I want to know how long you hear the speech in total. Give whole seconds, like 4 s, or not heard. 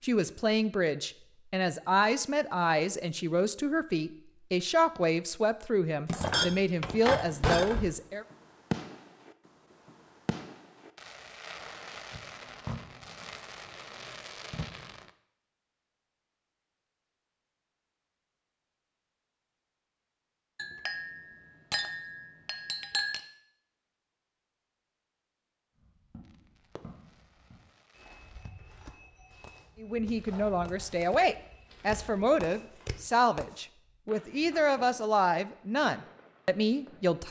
16 s.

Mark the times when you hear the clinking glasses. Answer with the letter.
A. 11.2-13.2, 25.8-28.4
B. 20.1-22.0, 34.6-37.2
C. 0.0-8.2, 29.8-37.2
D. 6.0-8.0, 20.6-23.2
D.